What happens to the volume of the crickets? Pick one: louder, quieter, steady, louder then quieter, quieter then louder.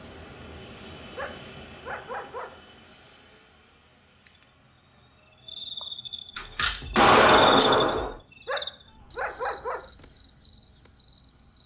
louder then quieter.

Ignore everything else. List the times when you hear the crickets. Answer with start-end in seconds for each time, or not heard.
4.0-11.6.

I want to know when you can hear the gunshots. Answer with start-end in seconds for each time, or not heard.
6.3-8.2.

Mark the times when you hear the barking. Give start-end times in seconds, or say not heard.
1.1-2.6, 8.4-9.9.